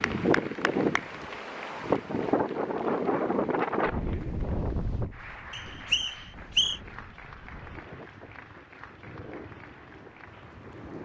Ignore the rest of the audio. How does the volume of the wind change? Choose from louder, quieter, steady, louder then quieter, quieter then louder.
quieter.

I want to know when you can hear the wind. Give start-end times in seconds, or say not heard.
0.0-11.0.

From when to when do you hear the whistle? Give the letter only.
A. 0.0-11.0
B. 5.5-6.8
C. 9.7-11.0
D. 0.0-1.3
B.